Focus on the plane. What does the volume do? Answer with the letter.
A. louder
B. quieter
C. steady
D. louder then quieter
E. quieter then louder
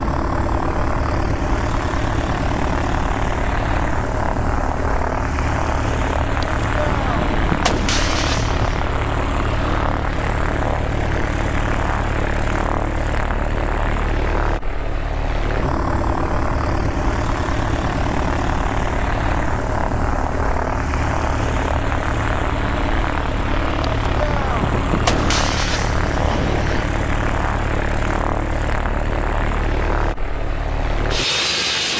C.